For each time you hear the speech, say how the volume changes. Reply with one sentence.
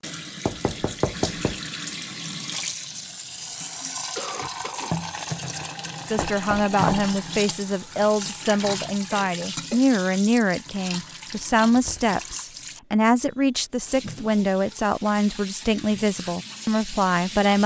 The speech can be heard from 6.0 to 17.6 s, at a steady volume.